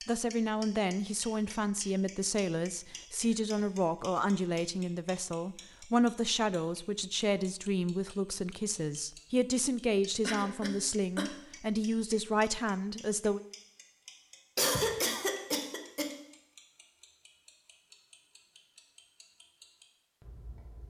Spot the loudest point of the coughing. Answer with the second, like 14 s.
15 s.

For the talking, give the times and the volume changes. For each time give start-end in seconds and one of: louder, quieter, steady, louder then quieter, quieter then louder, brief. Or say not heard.
0.1-13.4 steady.